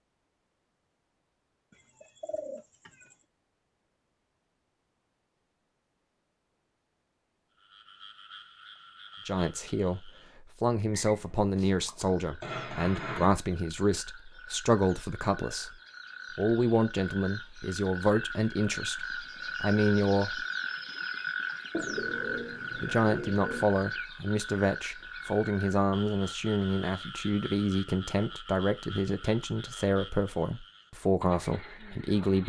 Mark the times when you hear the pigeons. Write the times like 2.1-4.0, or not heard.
1.7-3.1, 21.7-23.7.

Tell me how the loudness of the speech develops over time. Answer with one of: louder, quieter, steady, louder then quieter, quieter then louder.
steady.